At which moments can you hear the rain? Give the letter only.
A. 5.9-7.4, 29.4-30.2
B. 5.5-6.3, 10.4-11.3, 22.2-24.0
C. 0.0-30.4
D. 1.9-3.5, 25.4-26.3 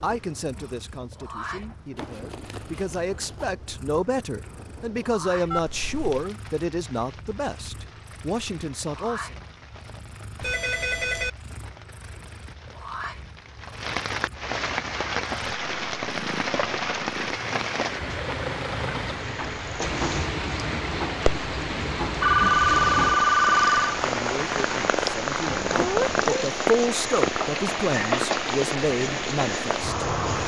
C.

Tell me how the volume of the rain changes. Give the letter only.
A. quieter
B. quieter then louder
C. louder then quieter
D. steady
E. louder
E.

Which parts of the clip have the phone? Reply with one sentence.
The phone can be heard from 5.5 to 6.3 s, from 10.4 to 11.3 s and from 22.2 to 24.0 s.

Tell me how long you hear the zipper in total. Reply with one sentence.
The zipper can be heard for 2 seconds in total.